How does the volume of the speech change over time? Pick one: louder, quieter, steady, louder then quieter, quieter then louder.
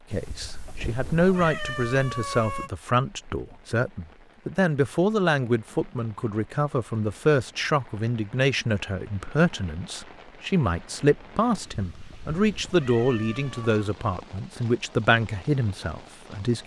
steady.